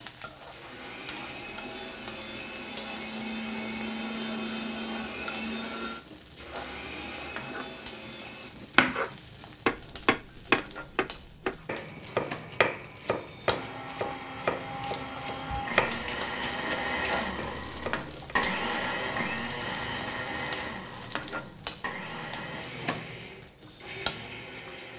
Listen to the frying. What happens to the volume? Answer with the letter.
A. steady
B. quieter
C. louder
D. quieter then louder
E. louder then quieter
C.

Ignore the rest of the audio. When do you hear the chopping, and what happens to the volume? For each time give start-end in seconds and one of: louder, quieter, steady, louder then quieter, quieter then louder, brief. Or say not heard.
7.2-18.4 quieter.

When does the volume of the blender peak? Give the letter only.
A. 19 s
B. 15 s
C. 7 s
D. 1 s
A.